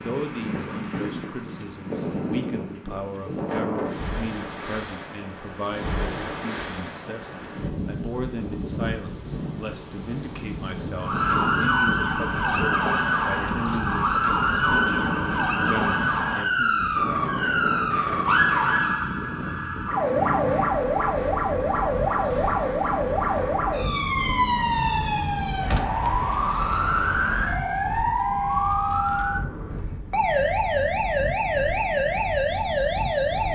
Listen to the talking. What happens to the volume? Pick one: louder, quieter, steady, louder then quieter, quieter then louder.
steady.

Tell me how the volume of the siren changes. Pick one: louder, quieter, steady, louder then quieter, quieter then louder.
steady.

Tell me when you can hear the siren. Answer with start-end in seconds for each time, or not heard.
11.0-33.4.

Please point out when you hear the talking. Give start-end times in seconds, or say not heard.
0.0-16.8.